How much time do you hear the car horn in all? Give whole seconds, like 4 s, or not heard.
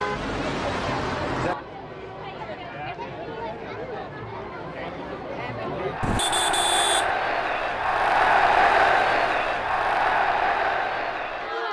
3 s.